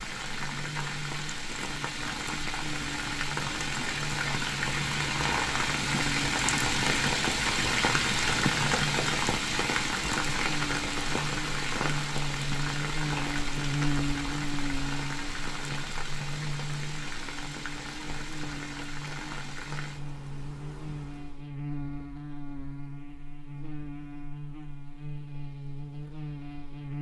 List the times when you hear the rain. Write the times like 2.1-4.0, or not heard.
0.0-21.5.